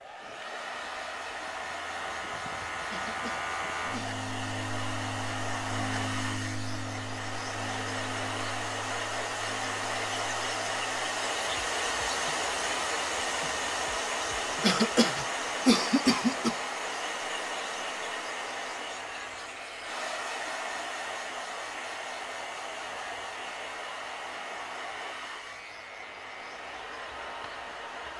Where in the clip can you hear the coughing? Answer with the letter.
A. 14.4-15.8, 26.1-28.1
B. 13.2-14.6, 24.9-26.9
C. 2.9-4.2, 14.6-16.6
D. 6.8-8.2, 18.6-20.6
C.